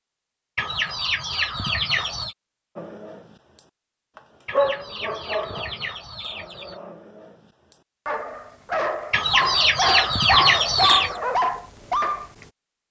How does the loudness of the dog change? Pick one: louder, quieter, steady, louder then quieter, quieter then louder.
quieter then louder.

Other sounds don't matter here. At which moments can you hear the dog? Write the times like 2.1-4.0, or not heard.
2.8-12.2.